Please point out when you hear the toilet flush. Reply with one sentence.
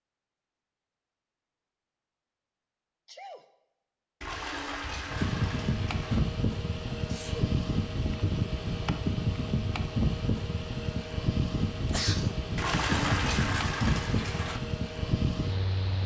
You can hear the toilet flush from 4.2 to 6.2 s and from 12.6 to 14.6 s.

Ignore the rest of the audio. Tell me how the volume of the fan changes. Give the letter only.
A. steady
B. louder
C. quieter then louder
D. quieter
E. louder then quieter
A.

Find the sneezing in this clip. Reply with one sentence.
The sneezing can be heard from 3.0 to 3.5 s, from 7.0 to 7.5 s and from 11.8 to 12.3 s.